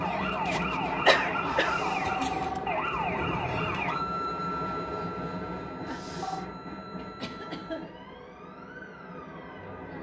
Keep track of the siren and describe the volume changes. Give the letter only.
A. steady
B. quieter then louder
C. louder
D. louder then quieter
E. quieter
E.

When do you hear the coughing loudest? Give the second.
1 s.